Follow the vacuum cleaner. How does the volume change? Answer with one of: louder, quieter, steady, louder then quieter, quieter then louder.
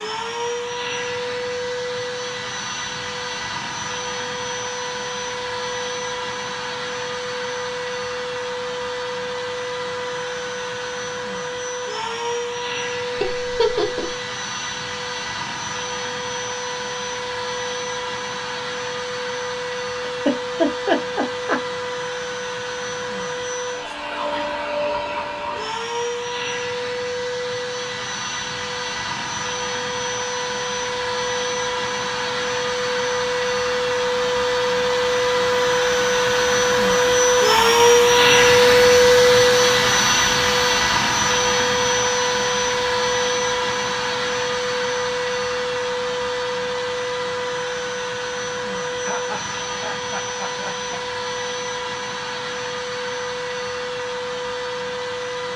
louder then quieter.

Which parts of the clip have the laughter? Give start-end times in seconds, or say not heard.
13.2-14.2, 20.0-21.6, 49.0-51.0.